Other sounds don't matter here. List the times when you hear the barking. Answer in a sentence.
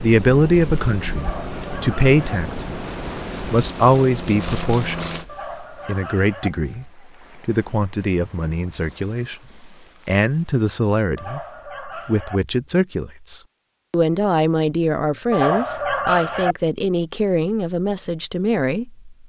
You can hear the barking from 1.1 to 2.4 s, from 5.2 to 6.5 s, from 11.2 to 12.4 s and from 15.3 to 16.6 s.